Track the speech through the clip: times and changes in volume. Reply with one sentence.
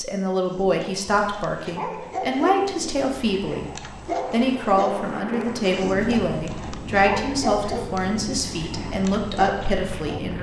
You can hear the speech from 0.0 to 10.3 s, at a steady volume.